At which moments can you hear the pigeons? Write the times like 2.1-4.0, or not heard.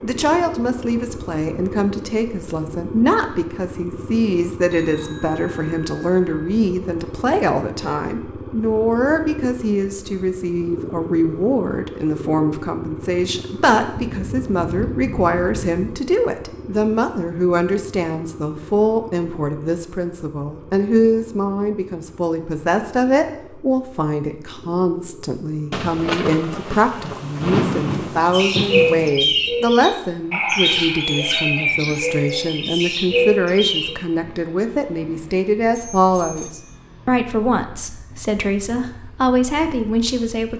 28.3-34.0.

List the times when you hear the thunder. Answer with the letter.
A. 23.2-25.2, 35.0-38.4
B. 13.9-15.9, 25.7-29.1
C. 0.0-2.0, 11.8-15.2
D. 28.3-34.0
B.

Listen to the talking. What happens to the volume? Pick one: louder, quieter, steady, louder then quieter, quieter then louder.
steady.